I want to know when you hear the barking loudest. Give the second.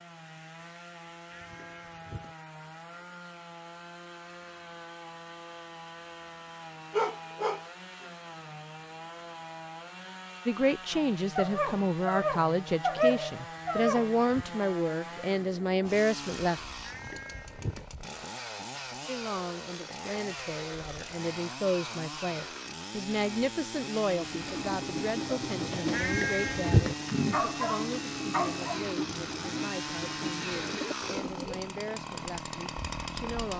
13 s.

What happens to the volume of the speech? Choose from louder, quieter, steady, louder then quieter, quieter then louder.
quieter.